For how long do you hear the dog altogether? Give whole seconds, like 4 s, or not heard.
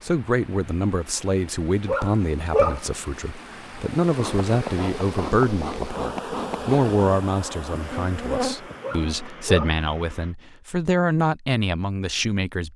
2 s.